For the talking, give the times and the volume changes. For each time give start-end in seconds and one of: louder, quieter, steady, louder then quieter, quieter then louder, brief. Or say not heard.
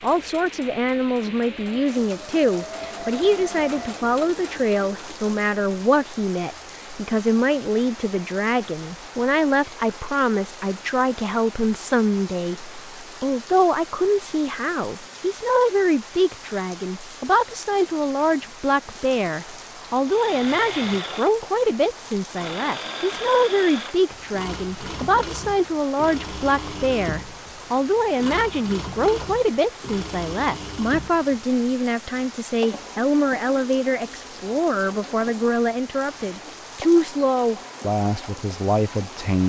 0.0-39.4 steady.